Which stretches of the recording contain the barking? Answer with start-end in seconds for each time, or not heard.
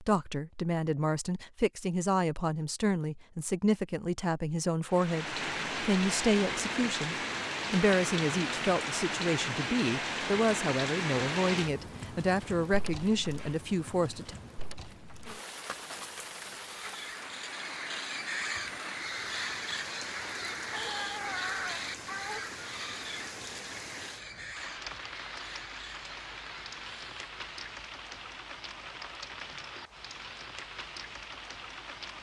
20.7-22.4.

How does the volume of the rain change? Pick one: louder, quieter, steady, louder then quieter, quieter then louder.
quieter.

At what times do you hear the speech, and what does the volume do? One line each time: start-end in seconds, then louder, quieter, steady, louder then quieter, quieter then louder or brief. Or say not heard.
0.0-14.3 steady.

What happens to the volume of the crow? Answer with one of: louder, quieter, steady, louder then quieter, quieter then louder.
quieter.